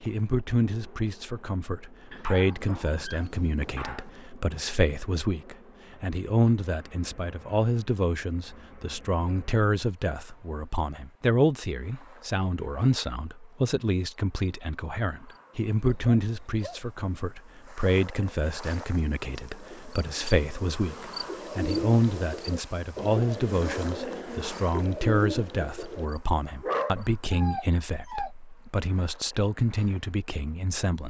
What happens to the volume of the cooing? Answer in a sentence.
The loudness of the cooing goes up.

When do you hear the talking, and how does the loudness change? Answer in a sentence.
You can hear the talking from 0.0 to 31.0 s, at a steady volume.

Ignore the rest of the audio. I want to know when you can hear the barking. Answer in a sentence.
The barking can be heard from 2.1 to 4.1 s, from 15.8 to 16.9 s and from 26.6 to 28.3 s.